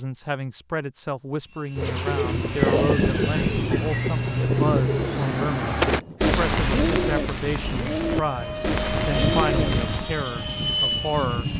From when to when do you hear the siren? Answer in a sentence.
You can't hear the siren here.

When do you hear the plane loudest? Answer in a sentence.
The loudest moment of the plane is at 3 seconds.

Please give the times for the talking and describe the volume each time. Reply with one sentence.
You can hear the talking from 0.0 to 11.5 s, at a steady volume.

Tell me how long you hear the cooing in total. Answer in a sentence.
You can hear the cooing for 8 seconds altogether.